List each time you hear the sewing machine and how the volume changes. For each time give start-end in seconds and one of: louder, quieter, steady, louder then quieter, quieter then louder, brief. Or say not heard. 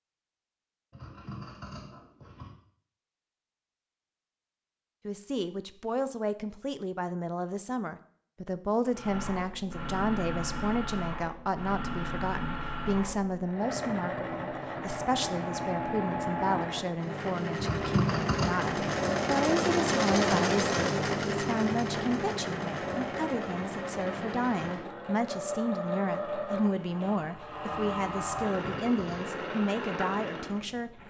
8.9-31.0 louder then quieter.